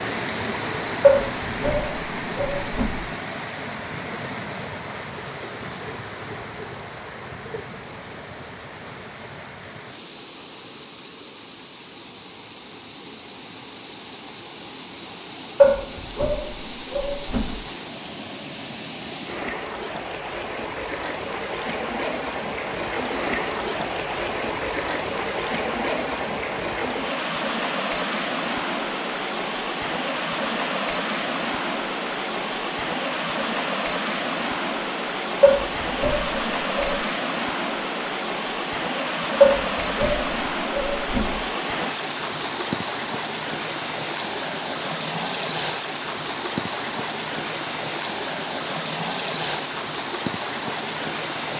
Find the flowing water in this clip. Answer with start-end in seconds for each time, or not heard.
0.0-51.5.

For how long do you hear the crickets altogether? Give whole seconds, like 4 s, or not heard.
not heard.